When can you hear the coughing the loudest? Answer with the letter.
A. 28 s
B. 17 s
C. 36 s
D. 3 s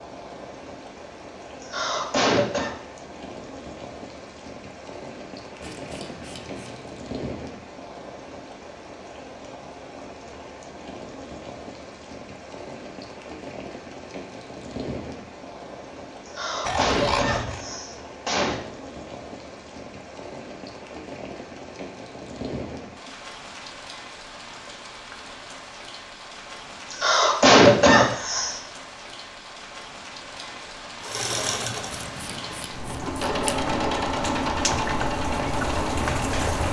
A.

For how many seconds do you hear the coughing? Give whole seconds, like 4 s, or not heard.
5 s.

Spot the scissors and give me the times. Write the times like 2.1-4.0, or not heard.
5.6-6.9, 16.6-17.6, 32.0-33.7.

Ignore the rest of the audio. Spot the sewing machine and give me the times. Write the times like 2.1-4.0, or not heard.
31.0-36.6.